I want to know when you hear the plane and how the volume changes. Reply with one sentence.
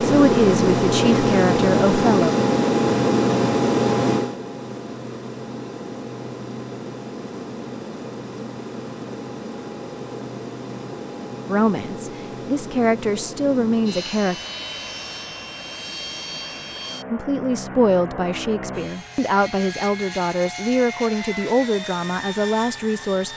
The plane can be heard from 0.0 to 23.3 s, getting quieter.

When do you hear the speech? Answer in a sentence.
The speech can be heard from 0.0 to 2.4 s, from 11.4 to 14.3 s and from 17.1 to 23.3 s.